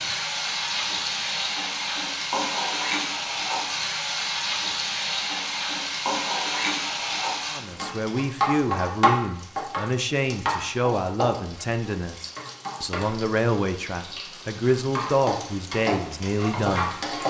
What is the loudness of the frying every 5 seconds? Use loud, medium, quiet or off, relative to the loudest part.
loud, loud, medium, loud.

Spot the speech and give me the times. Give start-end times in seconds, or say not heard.
7.5-17.2.